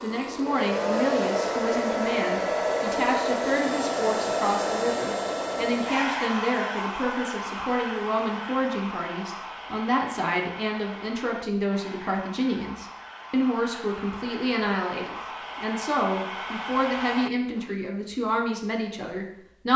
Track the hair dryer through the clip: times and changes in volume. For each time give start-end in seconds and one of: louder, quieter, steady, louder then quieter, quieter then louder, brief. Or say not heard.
0.0-17.7 quieter then louder.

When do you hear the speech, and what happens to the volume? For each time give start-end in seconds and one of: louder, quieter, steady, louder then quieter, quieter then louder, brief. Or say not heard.
0.0-19.7 steady.